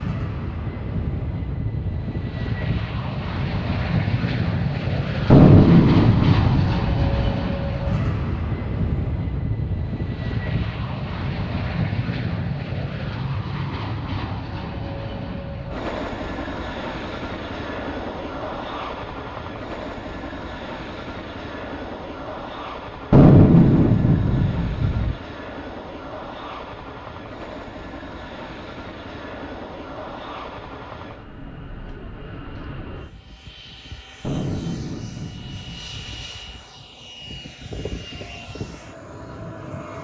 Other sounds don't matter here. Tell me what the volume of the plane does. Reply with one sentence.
The loudness of the plane goes down.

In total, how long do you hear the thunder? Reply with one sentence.
The thunder can be heard for 6 seconds in total.